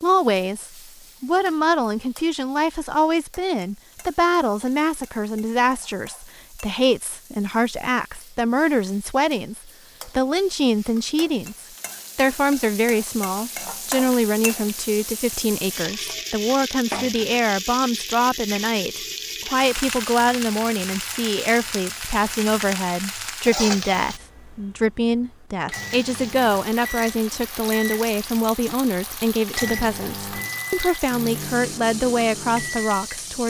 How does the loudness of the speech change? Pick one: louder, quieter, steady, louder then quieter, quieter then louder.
steady.